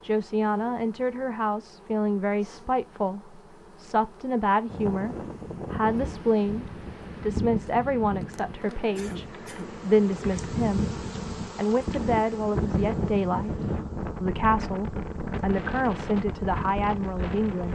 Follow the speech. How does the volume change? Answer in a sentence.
The volume of the speech stays about the same.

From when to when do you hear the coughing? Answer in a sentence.
You can hear the coughing from 8.9 to 9.7 s.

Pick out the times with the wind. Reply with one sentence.
The wind can be heard from 4.7 to 17.7 s.